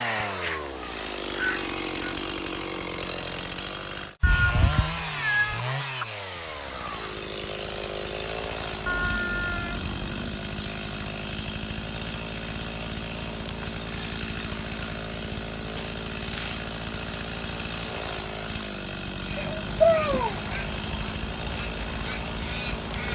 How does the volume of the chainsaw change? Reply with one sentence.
The loudness of the chainsaw stays about the same.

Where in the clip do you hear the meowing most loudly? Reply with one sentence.
The volume of the meowing peaks at 20 seconds.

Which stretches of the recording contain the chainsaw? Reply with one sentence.
The chainsaw can be heard from 0.0 to 23.0 s.